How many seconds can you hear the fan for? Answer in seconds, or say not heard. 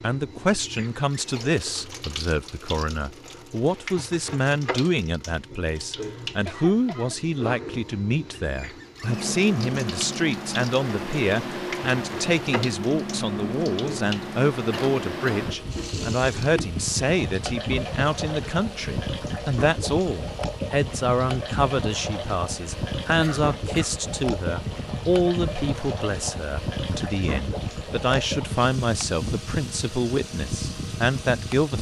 23 s.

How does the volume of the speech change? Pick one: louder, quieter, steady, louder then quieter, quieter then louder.
steady.